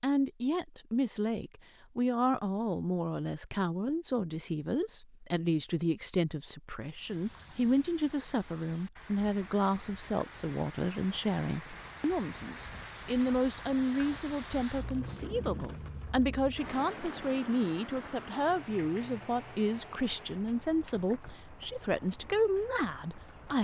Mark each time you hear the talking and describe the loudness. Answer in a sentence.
You can hear the talking from 0.0 to 23.6 s, at a steady volume.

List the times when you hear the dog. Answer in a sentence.
You can't hear the dog here.